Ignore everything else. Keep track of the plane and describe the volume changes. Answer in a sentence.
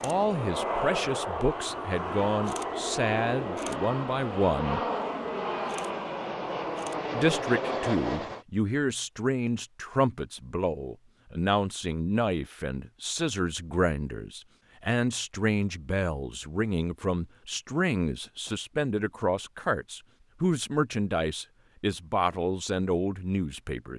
The volume of the plane stays about the same.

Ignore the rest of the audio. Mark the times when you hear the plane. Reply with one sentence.
The plane can be heard from 0.0 to 8.4 s.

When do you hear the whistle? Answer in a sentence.
The whistle can't be heard in this clip.